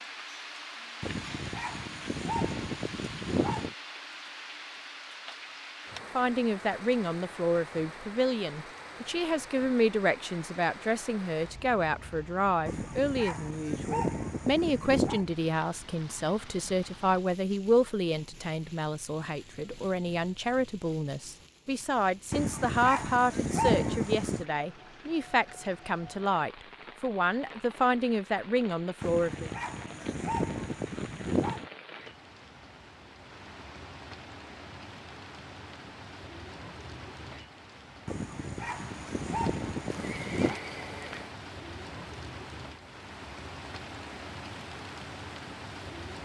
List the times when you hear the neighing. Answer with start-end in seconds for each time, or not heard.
39.9-41.4.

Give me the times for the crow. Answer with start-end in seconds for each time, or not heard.
not heard.